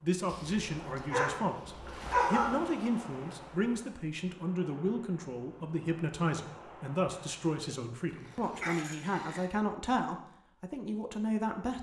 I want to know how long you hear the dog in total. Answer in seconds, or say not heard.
4 s.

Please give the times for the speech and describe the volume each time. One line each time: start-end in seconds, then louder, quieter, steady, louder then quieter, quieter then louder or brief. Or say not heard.
0.0-11.7 steady.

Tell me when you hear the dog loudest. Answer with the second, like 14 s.
2 s.